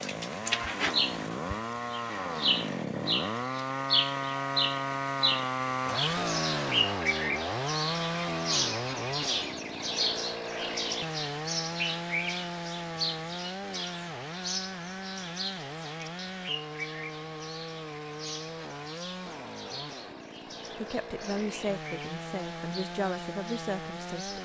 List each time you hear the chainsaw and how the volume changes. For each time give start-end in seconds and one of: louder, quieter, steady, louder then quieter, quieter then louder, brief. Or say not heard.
0.0-24.4 quieter.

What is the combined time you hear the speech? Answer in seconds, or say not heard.
4 s.